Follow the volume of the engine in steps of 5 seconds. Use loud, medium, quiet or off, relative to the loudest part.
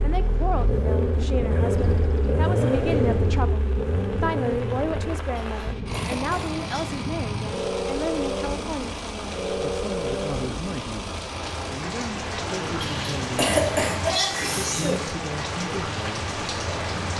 loud, medium, medium, medium.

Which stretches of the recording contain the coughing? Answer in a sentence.
You can hear the coughing from 5.3 to 7.0 s and from 12.8 to 15.1 s.